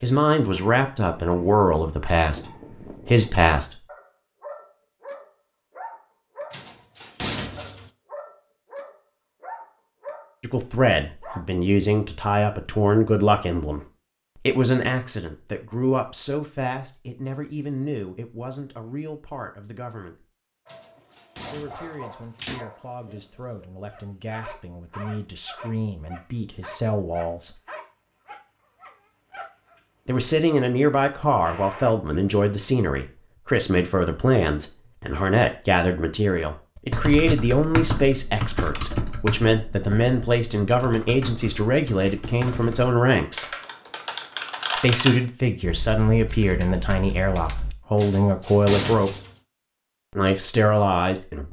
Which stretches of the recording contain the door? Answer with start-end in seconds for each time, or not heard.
6.5-7.9, 20.6-22.6, 48.0-49.4.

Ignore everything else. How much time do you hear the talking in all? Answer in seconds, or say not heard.
39 s.